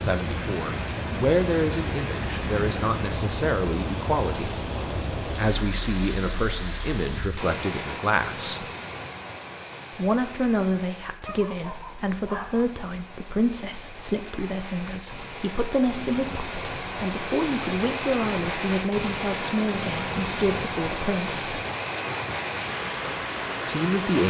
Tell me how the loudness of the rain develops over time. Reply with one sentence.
The loudness of the rain goes down, then up.